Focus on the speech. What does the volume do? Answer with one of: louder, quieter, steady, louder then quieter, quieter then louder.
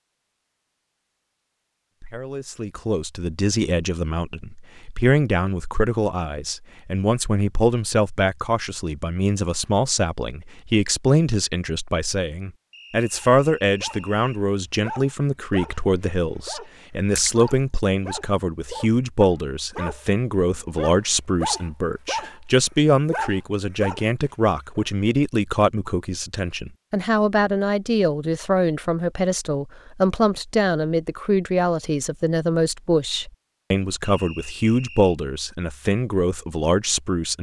steady.